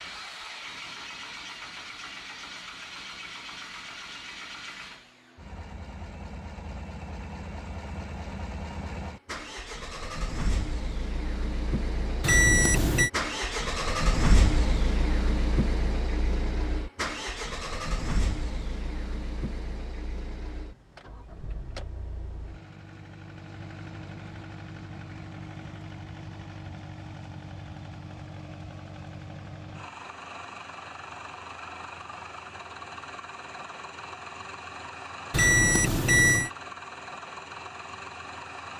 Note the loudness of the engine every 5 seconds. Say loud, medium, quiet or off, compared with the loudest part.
medium, medium, loud, loud, quiet, medium, medium, medium.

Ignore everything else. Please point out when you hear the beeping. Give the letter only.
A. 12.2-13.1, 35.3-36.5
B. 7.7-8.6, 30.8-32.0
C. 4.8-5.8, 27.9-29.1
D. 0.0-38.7
A.